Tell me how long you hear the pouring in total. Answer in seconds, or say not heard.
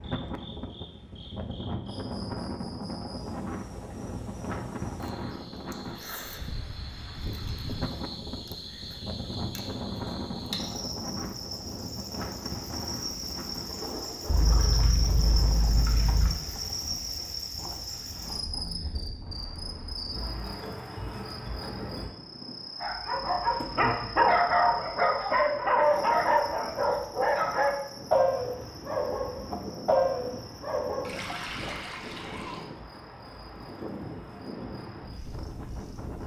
4 s.